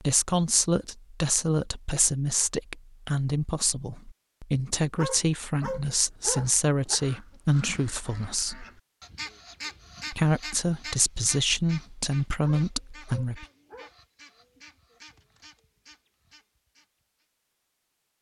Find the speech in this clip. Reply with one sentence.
The speech can be heard from 0.0 to 8.7 s and from 10.1 to 13.4 s.